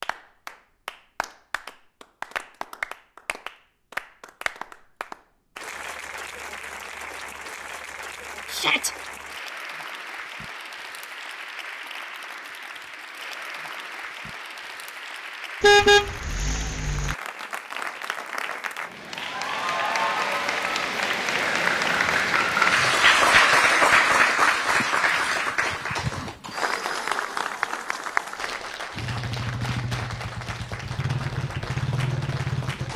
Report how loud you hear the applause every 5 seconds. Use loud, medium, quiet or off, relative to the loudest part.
quiet, quiet, quiet, quiet, loud, medium, quiet.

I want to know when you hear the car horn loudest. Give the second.
16 s.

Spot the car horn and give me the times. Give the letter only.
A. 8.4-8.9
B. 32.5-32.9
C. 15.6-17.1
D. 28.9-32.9
C.